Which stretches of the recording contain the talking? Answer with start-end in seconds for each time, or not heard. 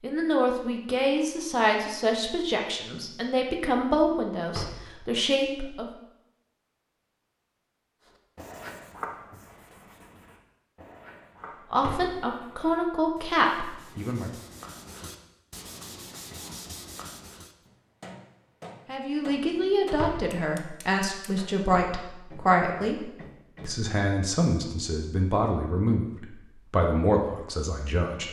0.0-5.8, 11.7-14.3, 18.9-28.2.